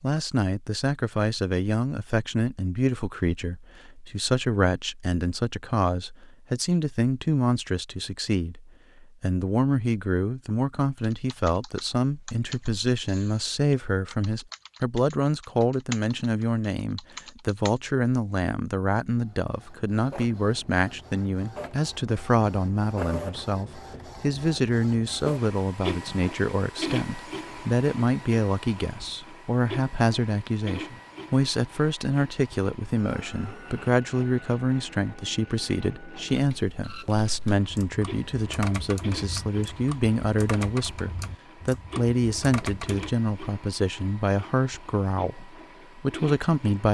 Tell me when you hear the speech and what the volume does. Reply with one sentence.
The speech can be heard from 0.0 to 46.8 s, at a steady volume.